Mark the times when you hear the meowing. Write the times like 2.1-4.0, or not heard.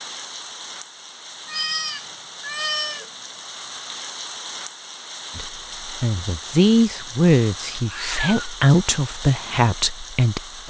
1.4-3.1, 7.7-8.6.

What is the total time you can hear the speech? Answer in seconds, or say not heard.
5 s.